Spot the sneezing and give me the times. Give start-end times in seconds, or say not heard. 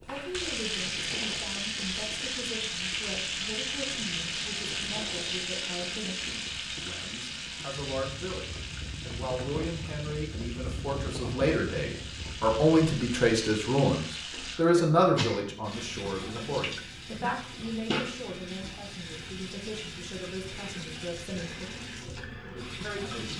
14.8-15.6.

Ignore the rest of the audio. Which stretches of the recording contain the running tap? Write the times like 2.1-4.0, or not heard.
0.0-23.3.